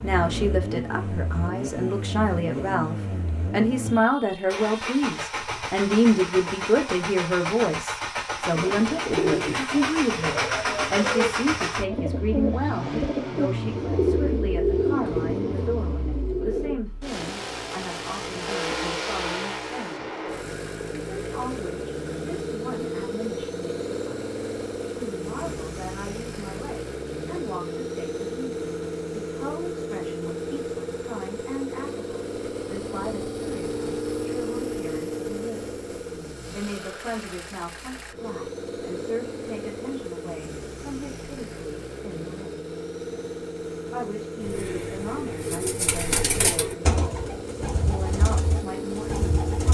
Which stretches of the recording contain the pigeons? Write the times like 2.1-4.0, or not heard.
8.5-16.8, 44.4-49.6.